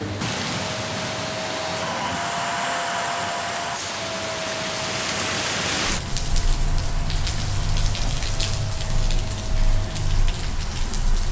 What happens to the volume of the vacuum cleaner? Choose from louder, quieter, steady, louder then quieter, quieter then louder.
quieter.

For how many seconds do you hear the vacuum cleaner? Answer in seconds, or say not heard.
11 s.